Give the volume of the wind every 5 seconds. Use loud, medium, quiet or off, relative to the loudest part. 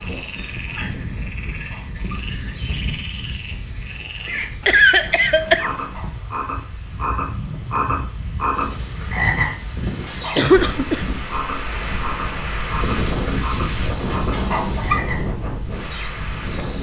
medium, medium, loud, loud.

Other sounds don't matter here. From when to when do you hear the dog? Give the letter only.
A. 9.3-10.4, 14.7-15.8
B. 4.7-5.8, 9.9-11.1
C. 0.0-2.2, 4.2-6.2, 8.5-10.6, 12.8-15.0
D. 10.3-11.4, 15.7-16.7
C.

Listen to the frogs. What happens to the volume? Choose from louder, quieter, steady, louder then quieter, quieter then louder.
louder then quieter.